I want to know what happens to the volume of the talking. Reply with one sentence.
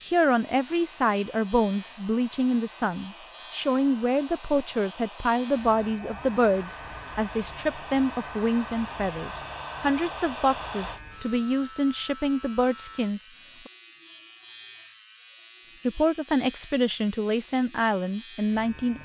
The loudness of the talking stays about the same.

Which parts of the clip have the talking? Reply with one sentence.
You can hear the talking from 0.0 to 13.7 s and from 15.8 to 18.9 s.